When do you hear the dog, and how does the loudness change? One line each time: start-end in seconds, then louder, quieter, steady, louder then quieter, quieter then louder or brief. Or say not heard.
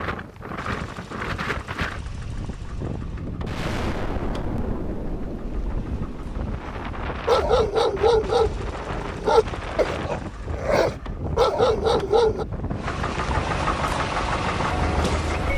7.2-12.4 quieter then louder.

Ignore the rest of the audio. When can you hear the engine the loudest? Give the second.
14 s.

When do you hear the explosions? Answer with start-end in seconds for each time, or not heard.
3.5-6.8.